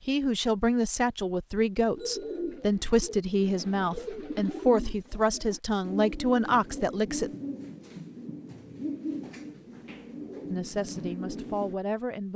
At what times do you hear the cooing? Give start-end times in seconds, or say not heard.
1.9-11.8.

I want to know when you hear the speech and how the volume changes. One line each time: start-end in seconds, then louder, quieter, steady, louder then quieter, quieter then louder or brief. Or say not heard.
0.1-7.3 steady
10.4-12.3 brief.